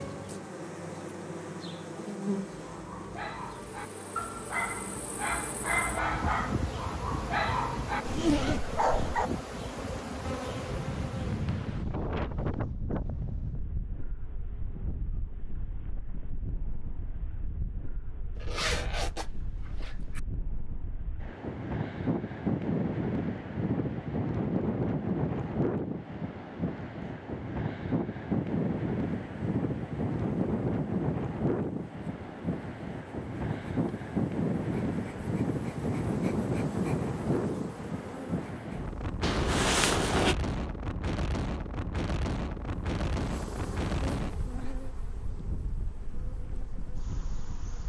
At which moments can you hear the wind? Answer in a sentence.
You can hear the wind from 10.3 to 47.8 s.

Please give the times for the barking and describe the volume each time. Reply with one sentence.
The barking can be heard from 2.5 to 9.3 s, getting louder.